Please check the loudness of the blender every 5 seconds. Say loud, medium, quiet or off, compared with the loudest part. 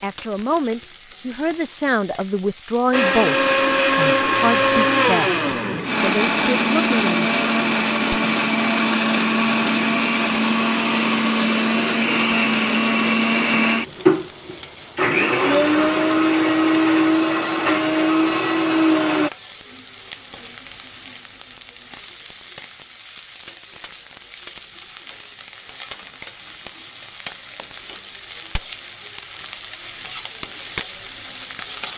loud, loud, loud, loud, off, off, off.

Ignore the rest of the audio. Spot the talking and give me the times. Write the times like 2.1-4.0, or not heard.
0.0-7.3.